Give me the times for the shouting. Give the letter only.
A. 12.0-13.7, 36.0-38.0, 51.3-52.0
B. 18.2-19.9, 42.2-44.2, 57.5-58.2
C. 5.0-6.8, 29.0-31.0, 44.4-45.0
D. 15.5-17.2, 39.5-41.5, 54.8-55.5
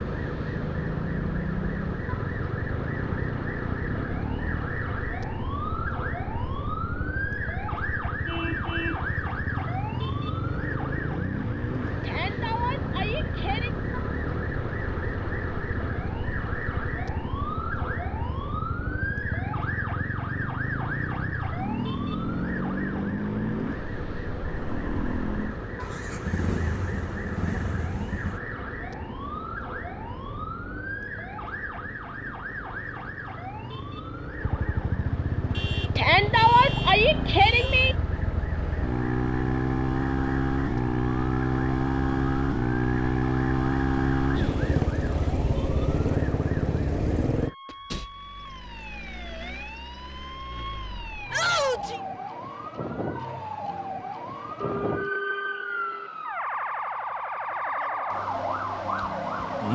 A.